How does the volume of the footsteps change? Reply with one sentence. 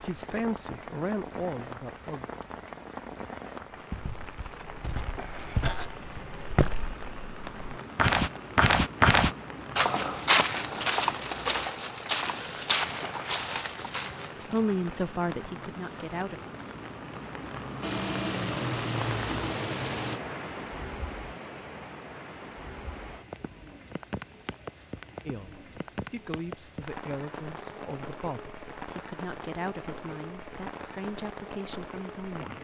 The loudness of the footsteps goes up, then down.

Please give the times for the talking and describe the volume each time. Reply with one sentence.
You can hear the talking briefly from 0.0 to 2.3 s; briefly from 14.5 to 16.4 s; and from 25.2 to 32.5 s, at a steady volume.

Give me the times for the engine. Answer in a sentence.
You can hear the engine from 17.8 to 20.2 s.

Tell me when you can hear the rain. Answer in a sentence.
The rain can be heard from 0.0 to 32.5 s.